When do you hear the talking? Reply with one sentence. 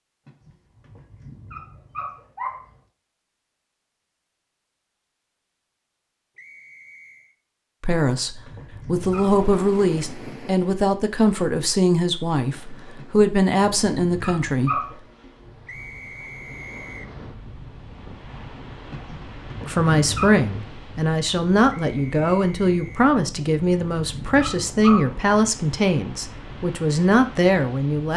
You can hear the talking from 7.8 to 14.8 s and from 19.6 to 28.1 s.